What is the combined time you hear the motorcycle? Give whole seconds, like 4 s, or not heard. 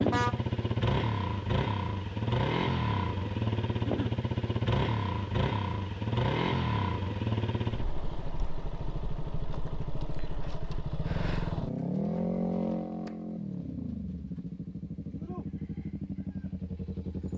17 s.